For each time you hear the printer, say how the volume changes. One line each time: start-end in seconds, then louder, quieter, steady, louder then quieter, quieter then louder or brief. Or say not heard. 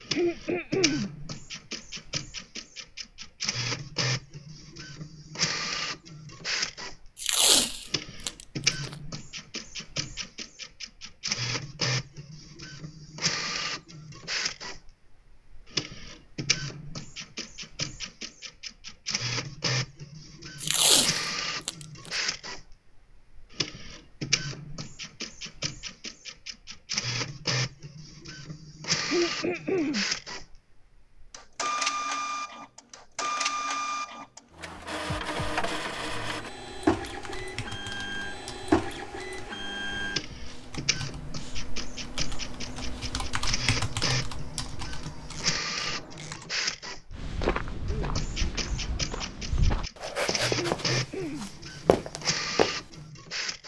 0.0-53.6 steady.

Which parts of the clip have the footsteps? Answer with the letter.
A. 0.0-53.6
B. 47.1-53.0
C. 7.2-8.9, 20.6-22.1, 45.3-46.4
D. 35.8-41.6
B.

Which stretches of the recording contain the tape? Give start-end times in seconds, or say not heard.
7.2-8.9, 20.6-22.1, 45.3-46.4.